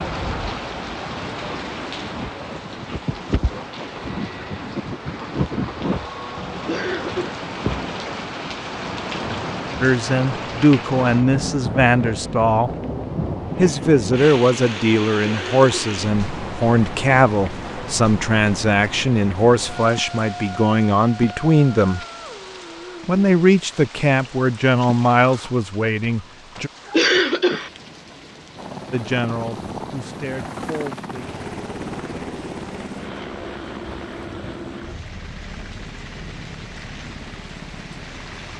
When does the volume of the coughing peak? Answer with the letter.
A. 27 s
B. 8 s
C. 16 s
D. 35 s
A.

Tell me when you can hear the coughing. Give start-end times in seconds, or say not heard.
6.7-7.5, 15.2-16.0, 26.9-27.7.